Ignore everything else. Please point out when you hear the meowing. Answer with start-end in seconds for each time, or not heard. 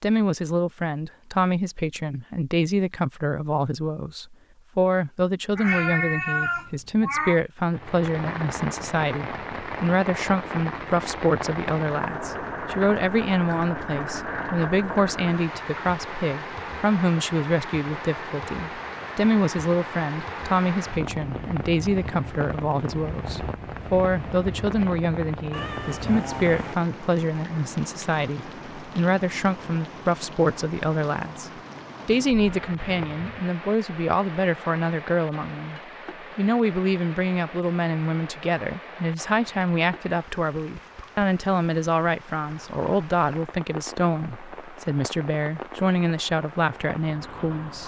5.5-7.4, 25.5-26.8, 32.4-33.4.